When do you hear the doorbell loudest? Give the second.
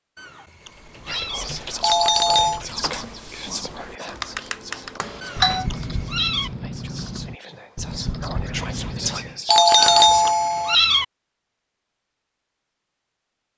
10 s.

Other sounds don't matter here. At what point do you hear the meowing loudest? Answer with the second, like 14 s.
11 s.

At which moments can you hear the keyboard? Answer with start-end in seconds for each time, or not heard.
0.6-9.3.